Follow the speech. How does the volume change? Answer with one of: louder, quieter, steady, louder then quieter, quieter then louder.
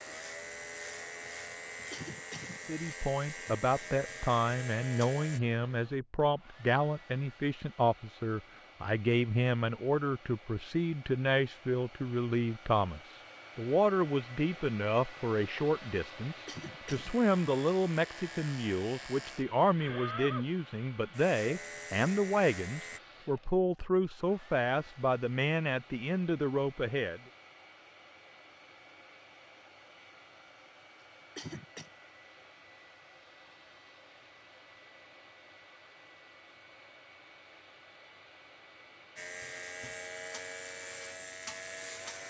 steady.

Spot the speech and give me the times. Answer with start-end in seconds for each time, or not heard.
2.6-27.2.